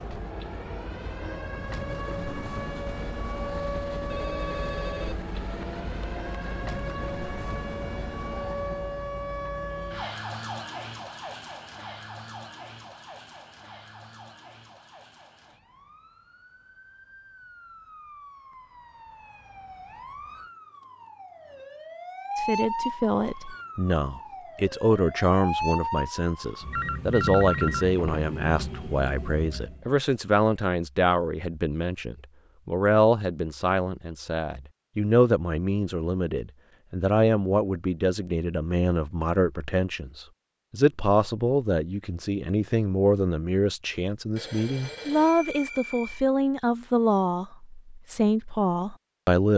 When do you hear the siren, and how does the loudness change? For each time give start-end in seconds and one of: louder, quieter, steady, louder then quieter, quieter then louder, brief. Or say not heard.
0.0-29.9 quieter then louder.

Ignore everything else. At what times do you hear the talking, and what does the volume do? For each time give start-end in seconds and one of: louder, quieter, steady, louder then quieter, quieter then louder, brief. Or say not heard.
22.4-49.5 steady.